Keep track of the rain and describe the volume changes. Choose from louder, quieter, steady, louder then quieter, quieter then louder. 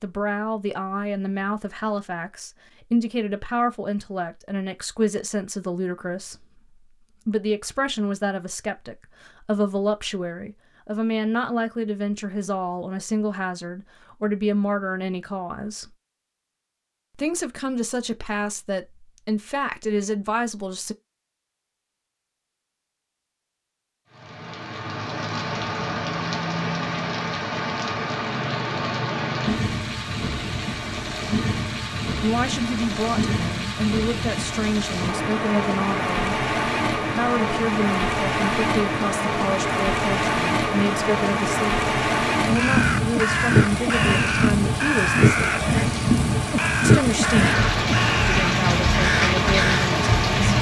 louder.